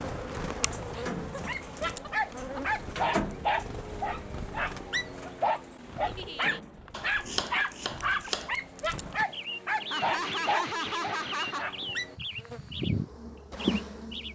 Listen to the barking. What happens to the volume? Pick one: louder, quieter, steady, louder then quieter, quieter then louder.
steady.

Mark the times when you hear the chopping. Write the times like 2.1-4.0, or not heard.
6.9-8.5.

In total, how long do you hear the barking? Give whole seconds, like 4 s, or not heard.
11 s.